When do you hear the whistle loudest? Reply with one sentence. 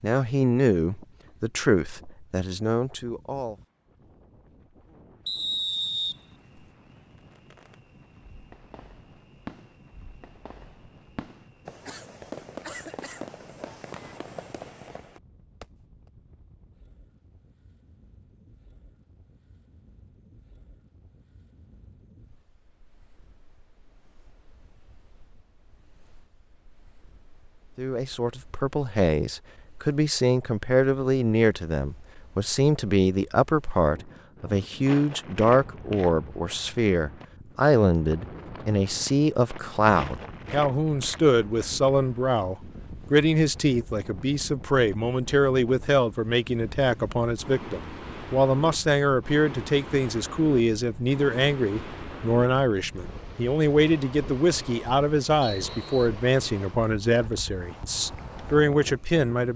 The volume of the whistle peaks at 6 seconds.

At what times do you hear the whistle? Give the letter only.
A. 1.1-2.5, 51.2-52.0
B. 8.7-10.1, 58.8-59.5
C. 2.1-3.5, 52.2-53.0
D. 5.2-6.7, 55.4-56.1
D.